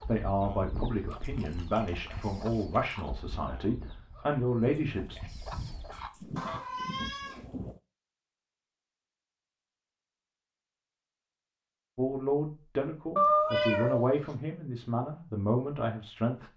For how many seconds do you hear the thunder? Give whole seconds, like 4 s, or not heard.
3 s.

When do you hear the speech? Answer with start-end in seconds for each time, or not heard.
0.1-5.3, 11.9-16.5.